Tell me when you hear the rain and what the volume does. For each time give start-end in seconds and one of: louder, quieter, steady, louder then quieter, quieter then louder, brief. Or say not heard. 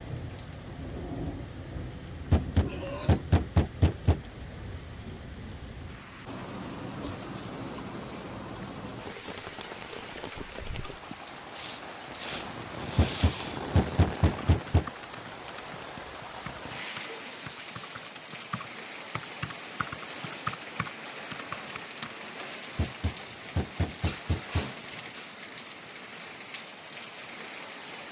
0.0-28.0 steady.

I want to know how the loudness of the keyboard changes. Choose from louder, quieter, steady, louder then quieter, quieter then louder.
louder.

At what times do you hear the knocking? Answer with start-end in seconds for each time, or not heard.
2.3-4.2, 12.9-14.8, 22.8-24.6.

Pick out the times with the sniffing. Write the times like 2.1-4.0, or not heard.
2.6-3.2, 11.1-13.6, 24.0-25.3.